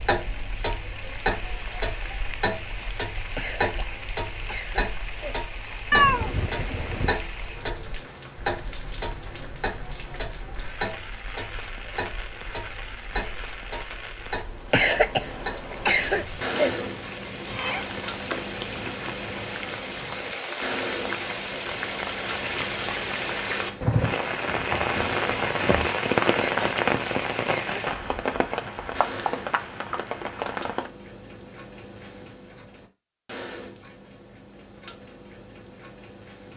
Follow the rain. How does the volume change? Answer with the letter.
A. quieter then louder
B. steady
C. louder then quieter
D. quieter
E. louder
E.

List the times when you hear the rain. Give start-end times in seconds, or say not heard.
0.0-30.9.